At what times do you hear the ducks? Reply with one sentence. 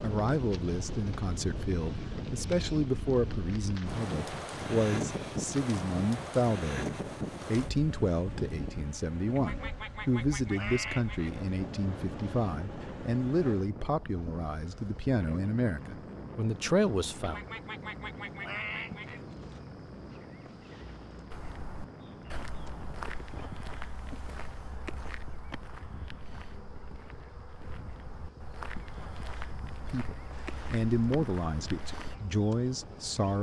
You can hear the ducks from 9.3 to 11.3 s and from 17.2 to 19.2 s.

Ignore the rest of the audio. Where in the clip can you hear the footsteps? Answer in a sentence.
You can hear the footsteps from 21.3 to 32.1 s.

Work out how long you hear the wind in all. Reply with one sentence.
The wind can be heard for 33 seconds in total.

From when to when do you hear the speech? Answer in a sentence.
You can hear the speech from 0.0 to 17.4 s and from 29.9 to 33.3 s.